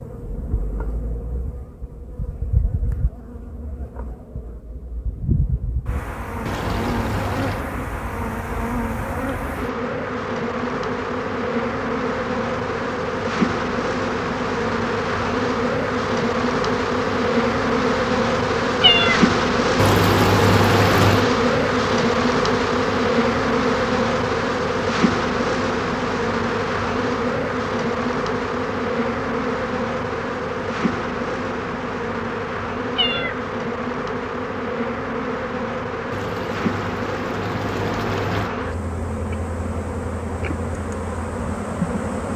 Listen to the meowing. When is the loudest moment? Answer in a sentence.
The volume of the meowing peaks at 19 seconds.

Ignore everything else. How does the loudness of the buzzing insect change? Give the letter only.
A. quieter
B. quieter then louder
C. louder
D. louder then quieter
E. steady
D.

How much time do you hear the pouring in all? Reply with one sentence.
The pouring can be heard for 5 seconds in total.